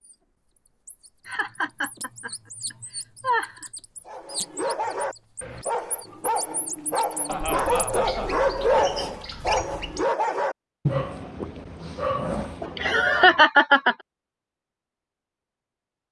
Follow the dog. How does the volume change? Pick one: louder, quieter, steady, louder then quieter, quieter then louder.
louder then quieter.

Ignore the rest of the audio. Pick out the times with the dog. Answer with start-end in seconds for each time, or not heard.
4.0-13.4.